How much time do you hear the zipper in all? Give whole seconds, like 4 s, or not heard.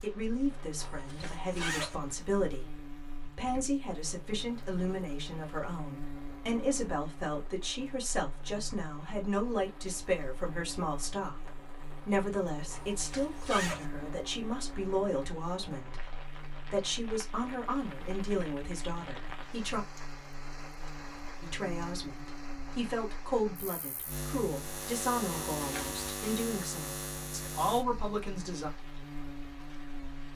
3 s.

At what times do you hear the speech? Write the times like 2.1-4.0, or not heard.
0.0-19.9, 21.4-28.7.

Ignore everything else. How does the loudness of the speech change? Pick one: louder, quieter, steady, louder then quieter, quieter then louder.
steady.